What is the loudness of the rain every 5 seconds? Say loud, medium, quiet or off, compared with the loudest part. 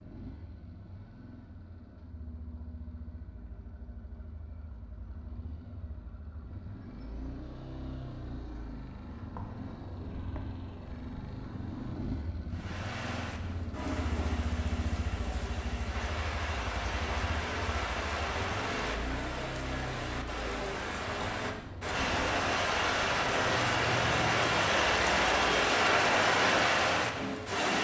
off, off, quiet, medium, loud, loud.